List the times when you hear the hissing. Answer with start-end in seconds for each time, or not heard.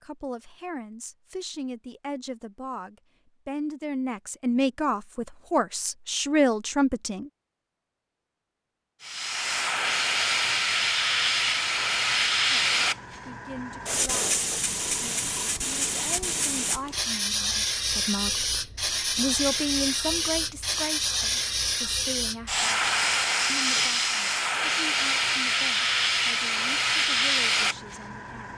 9.0-28.5.